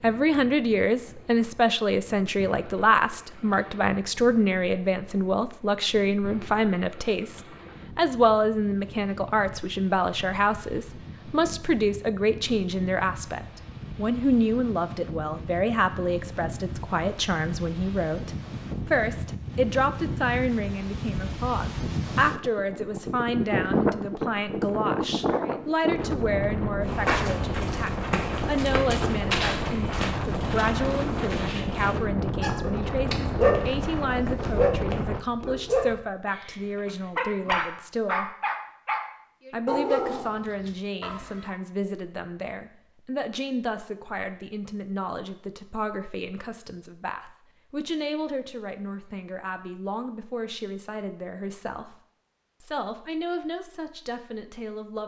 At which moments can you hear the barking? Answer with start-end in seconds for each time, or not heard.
32.4-41.5.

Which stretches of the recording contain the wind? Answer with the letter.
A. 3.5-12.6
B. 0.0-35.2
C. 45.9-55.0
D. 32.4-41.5
B.